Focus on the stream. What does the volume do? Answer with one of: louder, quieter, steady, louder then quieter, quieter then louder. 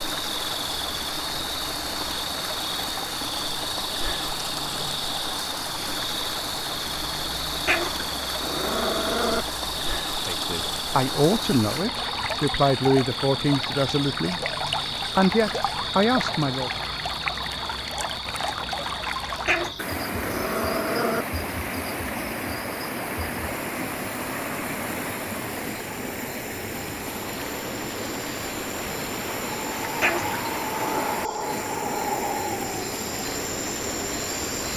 steady.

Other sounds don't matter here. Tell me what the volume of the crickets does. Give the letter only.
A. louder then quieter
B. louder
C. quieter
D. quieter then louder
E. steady
D.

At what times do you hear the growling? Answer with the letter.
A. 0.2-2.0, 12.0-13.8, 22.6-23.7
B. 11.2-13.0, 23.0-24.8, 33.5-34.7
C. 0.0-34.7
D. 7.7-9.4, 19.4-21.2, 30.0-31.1
D.